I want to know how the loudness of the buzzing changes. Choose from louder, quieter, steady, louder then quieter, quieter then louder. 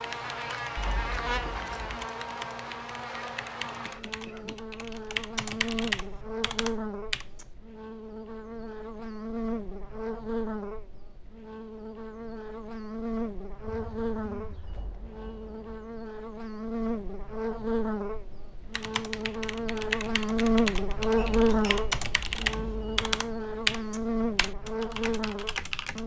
louder.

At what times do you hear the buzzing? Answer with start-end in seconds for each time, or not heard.
0.0-26.0.